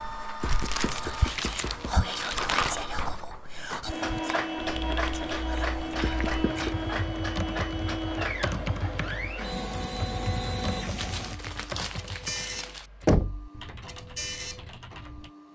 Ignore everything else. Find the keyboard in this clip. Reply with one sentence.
You can hear the keyboard from 4.5 to 15.3 s.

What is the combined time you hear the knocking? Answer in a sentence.
The knocking can be heard for 3 seconds in total.